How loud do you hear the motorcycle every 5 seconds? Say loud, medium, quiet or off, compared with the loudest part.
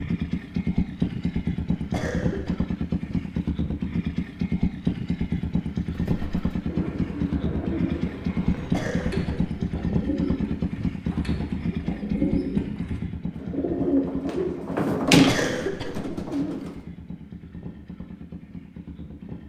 loud, loud, loud, quiet.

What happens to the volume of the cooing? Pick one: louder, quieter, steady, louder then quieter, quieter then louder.
louder.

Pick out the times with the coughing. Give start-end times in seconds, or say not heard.
1.8-2.5, 8.6-9.6, 15.1-16.6.